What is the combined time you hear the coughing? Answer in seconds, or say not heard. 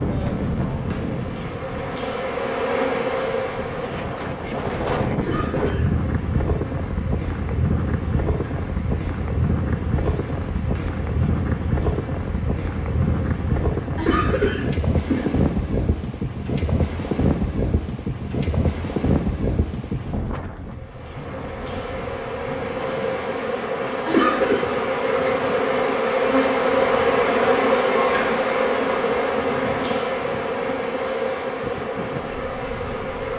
3 s.